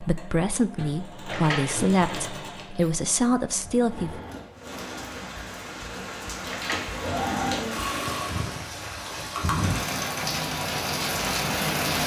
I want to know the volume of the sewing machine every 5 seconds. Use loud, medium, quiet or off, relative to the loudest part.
medium, loud, loud.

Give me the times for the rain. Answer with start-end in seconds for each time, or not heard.
4.5-12.0.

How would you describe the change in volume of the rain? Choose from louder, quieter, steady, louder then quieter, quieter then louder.
louder.